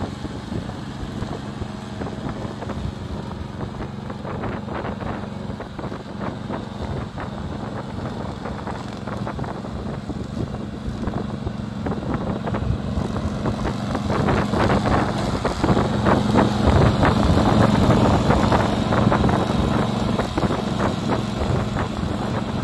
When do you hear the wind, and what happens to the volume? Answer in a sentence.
You can hear the wind from 0.0 to 22.5 s, getting louder.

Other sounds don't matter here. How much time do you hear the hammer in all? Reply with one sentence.
You can't hear the hammer here.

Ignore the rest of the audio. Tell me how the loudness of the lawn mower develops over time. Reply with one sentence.
The volume of the lawn mower goes up.